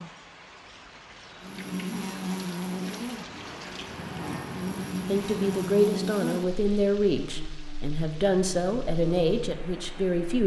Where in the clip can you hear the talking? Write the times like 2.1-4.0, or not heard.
5.0-10.4.